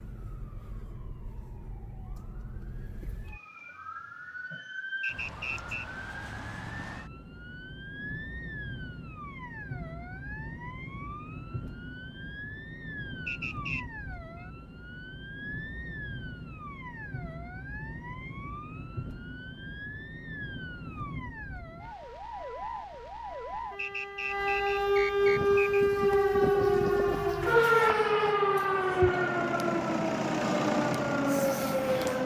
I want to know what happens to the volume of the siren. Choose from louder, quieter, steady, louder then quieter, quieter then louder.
louder.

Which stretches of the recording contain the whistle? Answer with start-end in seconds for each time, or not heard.
5.0-6.0, 13.2-13.8, 23.8-25.9.